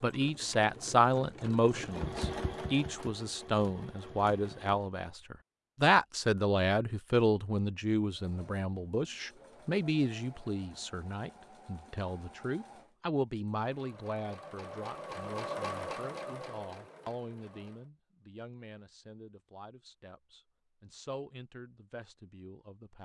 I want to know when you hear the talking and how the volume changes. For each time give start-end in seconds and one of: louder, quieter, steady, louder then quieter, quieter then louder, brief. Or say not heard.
0.0-23.0 quieter.